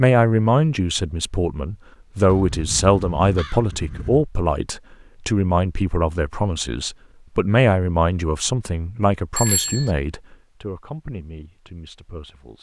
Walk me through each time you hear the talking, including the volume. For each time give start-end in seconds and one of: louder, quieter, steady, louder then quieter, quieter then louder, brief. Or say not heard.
0.0-12.5 quieter.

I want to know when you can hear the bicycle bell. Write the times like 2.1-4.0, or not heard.
9.3-9.9.